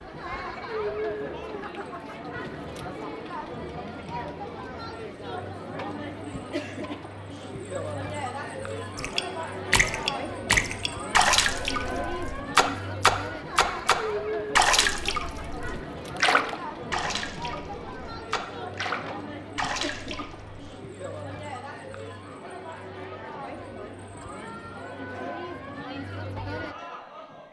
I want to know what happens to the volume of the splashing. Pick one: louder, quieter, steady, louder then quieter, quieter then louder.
quieter.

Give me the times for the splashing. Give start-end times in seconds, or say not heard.
8.9-20.7.